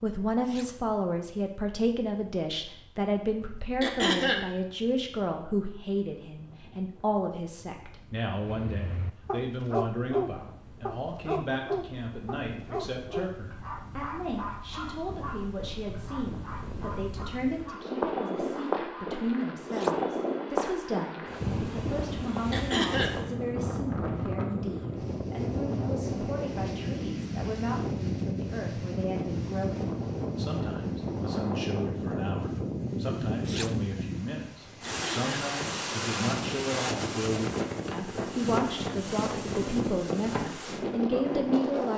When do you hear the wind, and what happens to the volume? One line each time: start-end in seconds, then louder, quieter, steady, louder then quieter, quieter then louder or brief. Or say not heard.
0.2-41.9 louder.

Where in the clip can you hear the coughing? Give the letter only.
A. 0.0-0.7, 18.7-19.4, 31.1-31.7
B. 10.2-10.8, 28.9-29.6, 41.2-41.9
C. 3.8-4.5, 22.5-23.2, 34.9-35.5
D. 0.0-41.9
C.